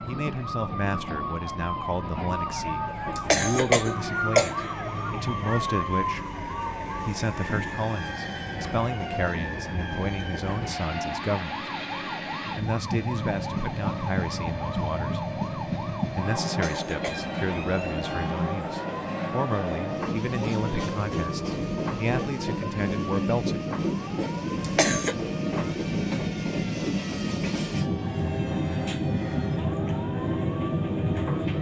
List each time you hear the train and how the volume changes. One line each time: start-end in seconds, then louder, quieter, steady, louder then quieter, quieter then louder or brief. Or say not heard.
0.0-31.5 louder.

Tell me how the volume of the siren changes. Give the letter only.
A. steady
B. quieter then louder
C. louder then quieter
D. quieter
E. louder
D.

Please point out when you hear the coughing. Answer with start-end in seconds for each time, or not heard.
2.9-4.7, 16.4-17.3, 24.6-25.1.